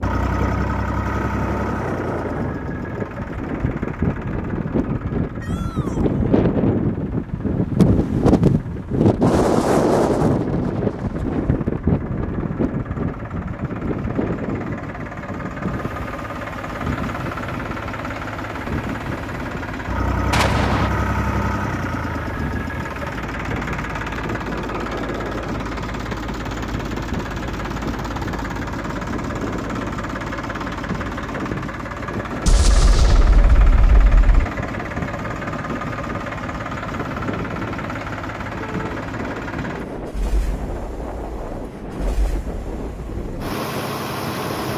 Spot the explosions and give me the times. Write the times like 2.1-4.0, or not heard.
20.3-20.9, 32.5-34.5.